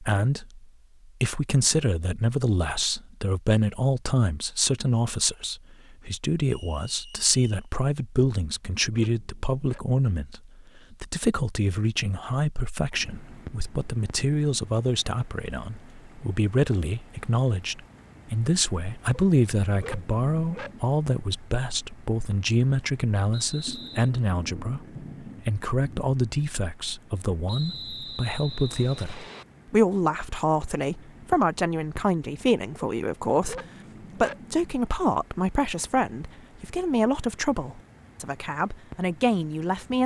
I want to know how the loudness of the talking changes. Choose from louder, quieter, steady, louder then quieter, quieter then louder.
steady.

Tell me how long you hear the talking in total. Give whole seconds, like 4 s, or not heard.
40 s.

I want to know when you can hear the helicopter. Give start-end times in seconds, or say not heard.
not heard.